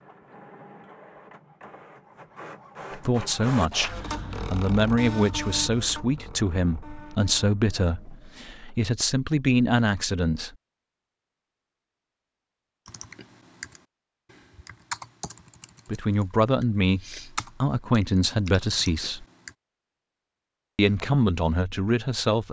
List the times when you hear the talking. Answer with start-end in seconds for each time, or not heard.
3.0-10.5, 15.8-19.2, 20.8-22.4.